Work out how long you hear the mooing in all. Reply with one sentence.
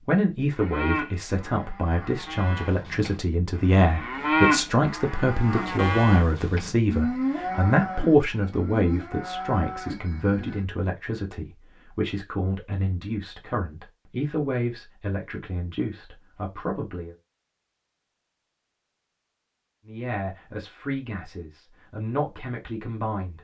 You can hear the mooing for 10 seconds altogether.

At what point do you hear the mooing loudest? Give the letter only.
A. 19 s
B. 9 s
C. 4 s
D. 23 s
C.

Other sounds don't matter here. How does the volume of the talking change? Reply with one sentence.
The volume of the talking goes down.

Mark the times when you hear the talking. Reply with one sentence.
The talking can be heard from 0.0 to 17.1 s and from 19.9 to 23.3 s.